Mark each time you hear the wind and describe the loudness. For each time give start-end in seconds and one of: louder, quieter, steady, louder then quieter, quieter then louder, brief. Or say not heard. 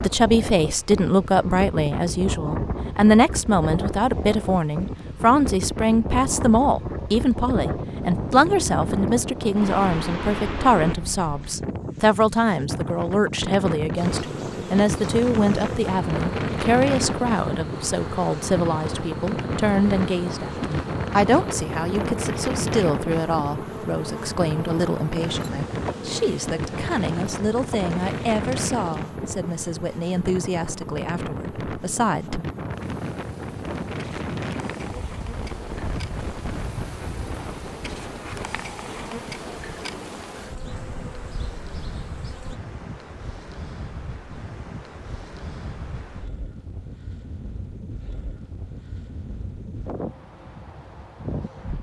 0.0-51.7 quieter.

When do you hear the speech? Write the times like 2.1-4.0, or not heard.
0.0-32.5.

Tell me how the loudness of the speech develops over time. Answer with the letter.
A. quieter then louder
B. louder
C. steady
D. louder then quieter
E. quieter
E.